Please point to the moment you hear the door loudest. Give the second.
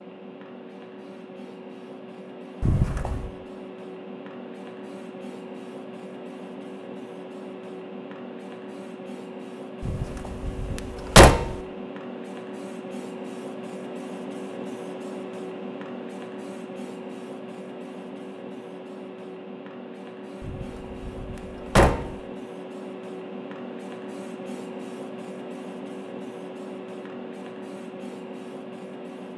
11 s.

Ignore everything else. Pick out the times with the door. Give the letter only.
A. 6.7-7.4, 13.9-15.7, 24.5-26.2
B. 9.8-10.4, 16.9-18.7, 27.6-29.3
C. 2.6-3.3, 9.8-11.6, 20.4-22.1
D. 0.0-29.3
C.